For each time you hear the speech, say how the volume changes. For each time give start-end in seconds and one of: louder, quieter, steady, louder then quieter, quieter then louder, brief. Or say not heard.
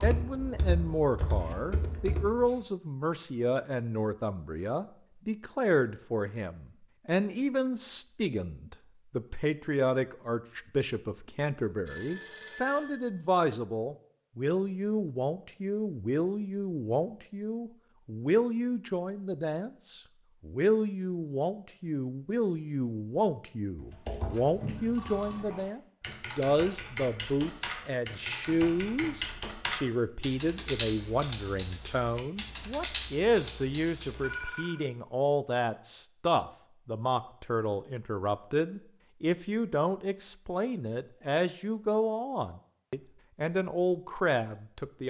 0.0-45.0 steady.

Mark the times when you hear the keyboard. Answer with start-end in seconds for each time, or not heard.
0.0-2.5, 23.8-34.4.